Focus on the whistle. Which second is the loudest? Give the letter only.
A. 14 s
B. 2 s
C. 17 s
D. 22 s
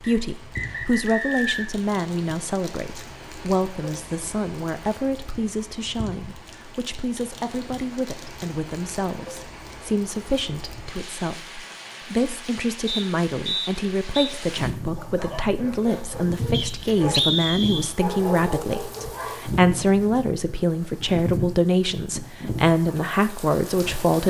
C.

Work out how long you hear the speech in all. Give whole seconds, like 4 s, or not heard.
24 s.